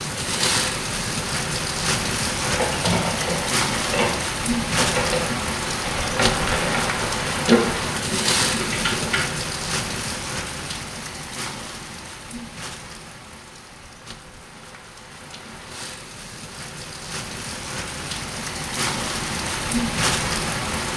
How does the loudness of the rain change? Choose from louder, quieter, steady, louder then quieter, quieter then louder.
quieter then louder.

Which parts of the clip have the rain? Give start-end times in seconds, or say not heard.
0.0-20.9.